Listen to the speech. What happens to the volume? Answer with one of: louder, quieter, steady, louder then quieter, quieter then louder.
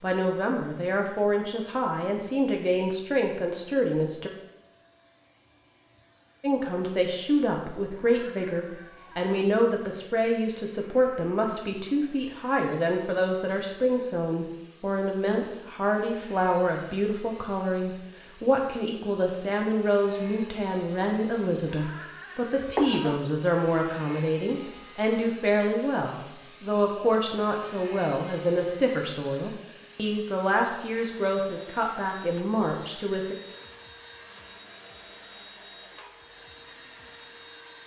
steady.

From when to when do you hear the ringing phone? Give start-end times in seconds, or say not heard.
22.6-23.2.